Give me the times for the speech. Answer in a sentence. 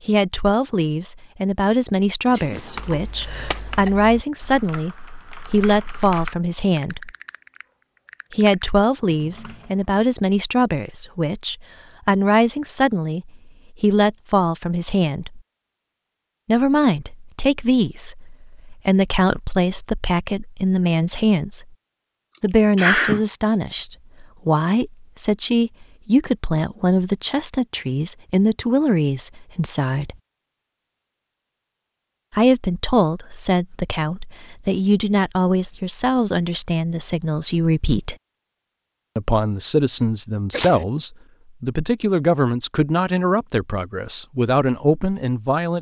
You can hear the speech from 0.1 to 7.1 s, from 8.3 to 15.4 s, from 16.4 to 21.6 s, from 22.4 to 30.1 s, from 32.3 to 38.1 s and from 39.1 to 45.7 s.